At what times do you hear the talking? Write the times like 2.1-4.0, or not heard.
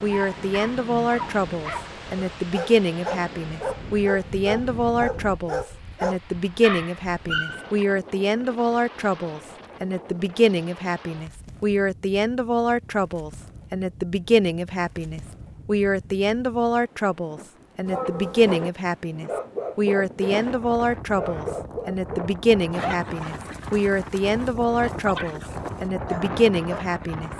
0.0-27.3.